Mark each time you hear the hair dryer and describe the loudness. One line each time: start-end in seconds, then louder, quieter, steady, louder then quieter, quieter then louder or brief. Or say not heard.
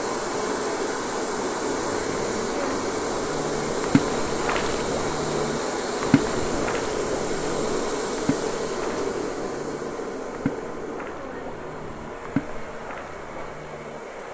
0.0-14.2 quieter.